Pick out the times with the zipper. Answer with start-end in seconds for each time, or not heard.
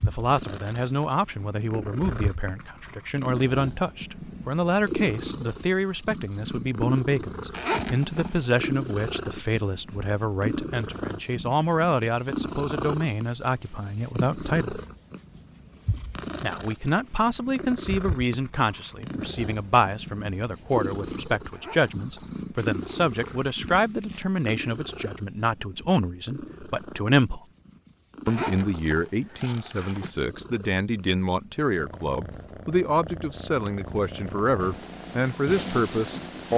7.5-8.6, 21.5-22.4, 28.2-30.1.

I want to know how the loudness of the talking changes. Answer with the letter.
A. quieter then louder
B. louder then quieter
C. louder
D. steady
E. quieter
D.